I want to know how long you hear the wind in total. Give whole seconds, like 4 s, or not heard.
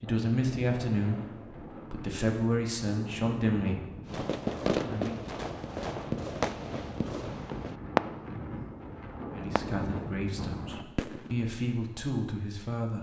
11 s.